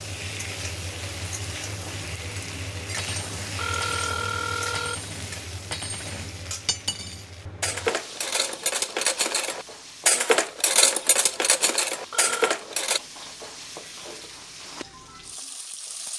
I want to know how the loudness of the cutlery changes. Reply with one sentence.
The loudness of the cutlery goes up.